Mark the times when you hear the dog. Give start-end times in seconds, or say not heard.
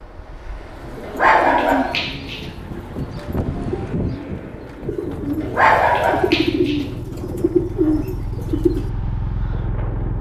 1.1-2.5, 5.4-6.8.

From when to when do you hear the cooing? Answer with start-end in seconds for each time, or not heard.
0.8-8.9.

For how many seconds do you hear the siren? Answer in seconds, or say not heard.
not heard.